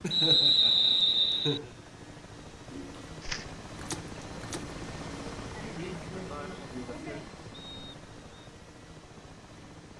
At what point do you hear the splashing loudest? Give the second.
3 s.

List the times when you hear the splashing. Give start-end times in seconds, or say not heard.
2.7-4.8.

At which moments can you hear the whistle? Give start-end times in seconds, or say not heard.
0.1-1.6, 7.5-8.5.